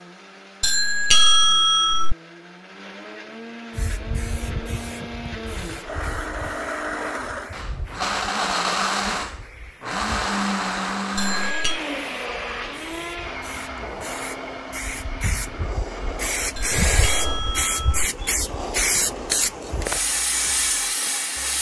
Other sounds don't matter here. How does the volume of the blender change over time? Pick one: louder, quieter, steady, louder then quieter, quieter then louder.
louder then quieter.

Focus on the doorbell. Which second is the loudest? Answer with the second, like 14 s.
1 s.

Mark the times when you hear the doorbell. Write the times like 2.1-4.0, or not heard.
0.6-2.1, 11.2-11.8, 16.6-18.1.